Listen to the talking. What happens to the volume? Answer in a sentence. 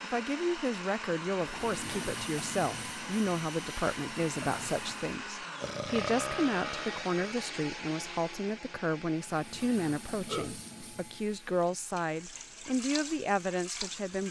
The volume of the talking stays about the same.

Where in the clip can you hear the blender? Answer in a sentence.
You can hear the blender from 0.0 to 14.2 s.